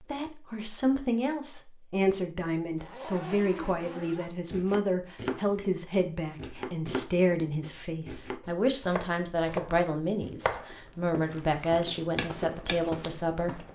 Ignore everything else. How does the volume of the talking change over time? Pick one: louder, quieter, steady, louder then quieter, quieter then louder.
steady.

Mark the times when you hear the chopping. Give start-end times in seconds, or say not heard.
4.5-12.9.